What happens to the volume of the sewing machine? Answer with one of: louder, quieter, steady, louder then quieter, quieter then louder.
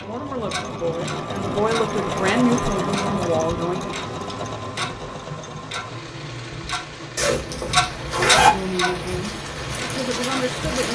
quieter.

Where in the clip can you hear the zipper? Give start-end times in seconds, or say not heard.
7.2-8.5.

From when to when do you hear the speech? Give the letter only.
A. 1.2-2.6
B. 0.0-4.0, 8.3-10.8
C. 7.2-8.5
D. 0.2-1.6
B.